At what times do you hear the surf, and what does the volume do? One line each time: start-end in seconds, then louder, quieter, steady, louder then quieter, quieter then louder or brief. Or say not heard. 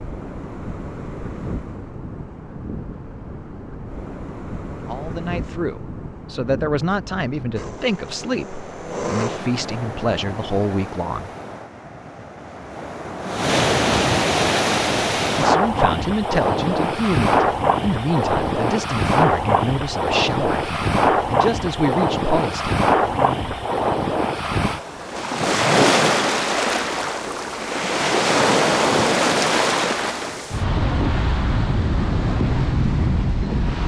0.0-33.8 louder.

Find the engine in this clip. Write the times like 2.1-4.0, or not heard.
7.5-9.4.